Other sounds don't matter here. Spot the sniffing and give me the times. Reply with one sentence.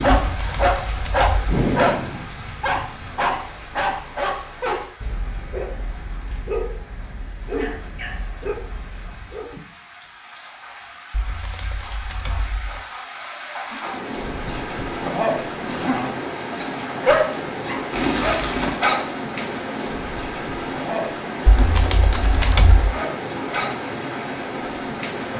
You can't hear the sniffing here.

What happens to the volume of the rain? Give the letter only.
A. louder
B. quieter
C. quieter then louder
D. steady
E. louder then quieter
C.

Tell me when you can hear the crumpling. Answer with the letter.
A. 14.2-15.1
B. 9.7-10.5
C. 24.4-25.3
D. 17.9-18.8
D.